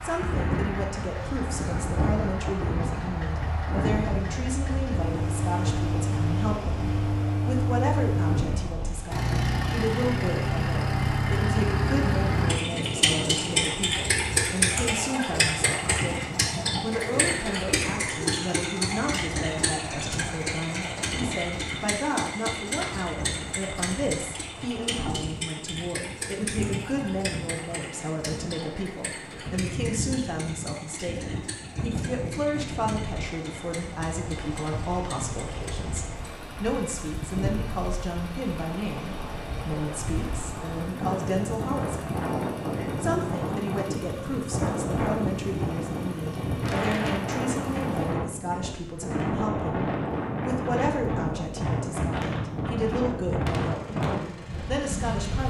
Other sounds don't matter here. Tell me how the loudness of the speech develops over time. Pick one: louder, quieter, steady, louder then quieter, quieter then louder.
steady.